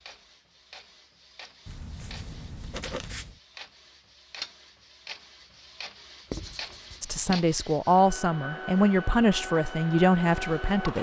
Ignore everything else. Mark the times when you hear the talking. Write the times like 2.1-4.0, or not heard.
7.0-10.9.